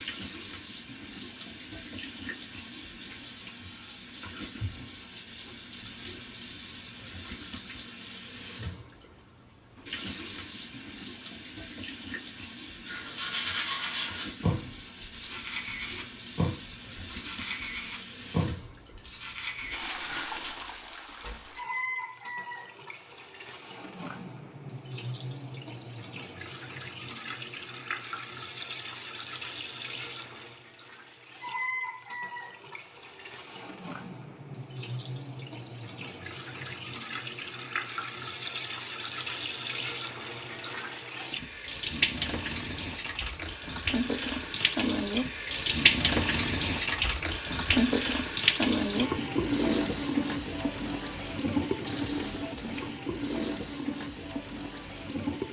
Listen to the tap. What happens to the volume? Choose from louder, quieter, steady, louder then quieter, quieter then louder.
louder.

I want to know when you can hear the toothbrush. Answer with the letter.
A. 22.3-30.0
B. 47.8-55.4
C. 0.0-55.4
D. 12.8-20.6
D.